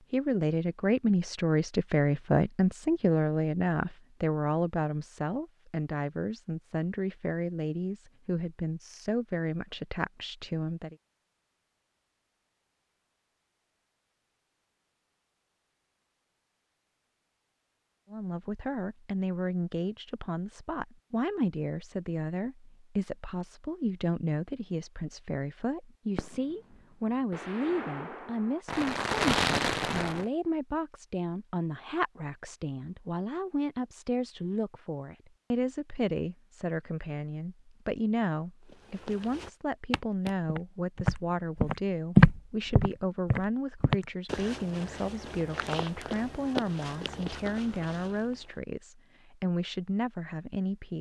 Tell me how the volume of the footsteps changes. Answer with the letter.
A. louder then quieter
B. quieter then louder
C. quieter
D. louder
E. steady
A.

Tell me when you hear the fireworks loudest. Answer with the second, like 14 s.
29 s.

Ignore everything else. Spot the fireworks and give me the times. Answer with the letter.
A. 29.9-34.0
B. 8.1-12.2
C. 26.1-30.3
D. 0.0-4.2
C.